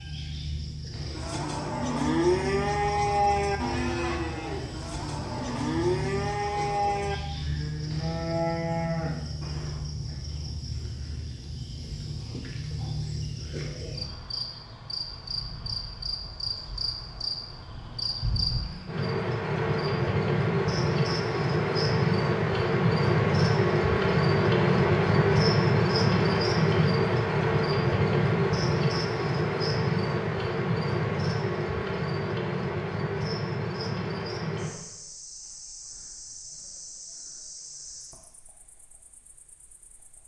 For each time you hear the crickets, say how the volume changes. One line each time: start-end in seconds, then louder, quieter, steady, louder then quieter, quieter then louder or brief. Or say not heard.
0.0-40.2 louder then quieter.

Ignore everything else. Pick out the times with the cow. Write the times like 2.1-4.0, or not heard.
1.1-9.9.